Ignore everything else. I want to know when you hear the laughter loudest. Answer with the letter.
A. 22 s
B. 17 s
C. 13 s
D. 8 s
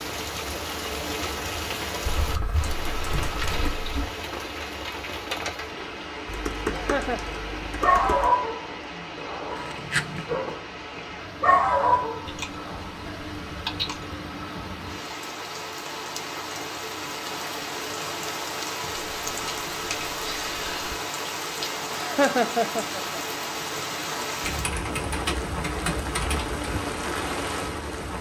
A.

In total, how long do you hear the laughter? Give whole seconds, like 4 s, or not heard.
2 s.